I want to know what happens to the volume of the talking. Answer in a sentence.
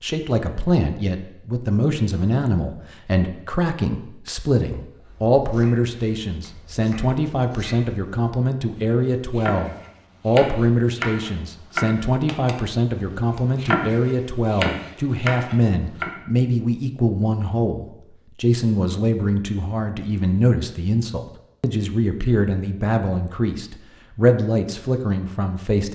The loudness of the talking stays about the same.